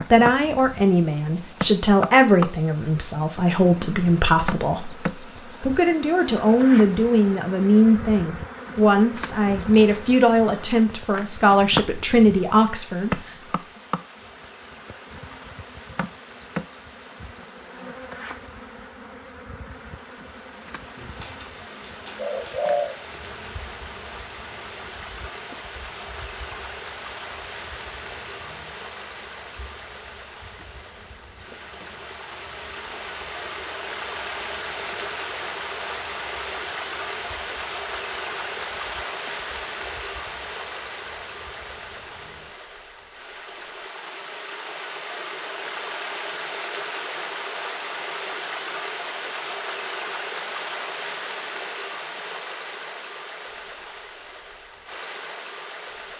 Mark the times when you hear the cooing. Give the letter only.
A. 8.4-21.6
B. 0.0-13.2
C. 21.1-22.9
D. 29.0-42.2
C.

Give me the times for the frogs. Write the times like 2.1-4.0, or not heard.
not heard.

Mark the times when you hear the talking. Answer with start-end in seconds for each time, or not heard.
0.0-13.2.